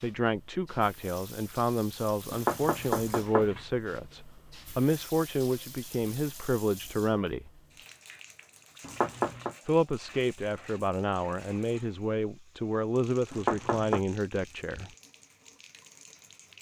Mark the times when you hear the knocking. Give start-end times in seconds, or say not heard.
2.3-3.6, 8.8-9.6, 13.3-14.0.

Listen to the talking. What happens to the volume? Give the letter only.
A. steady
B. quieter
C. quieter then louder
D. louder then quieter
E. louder
A.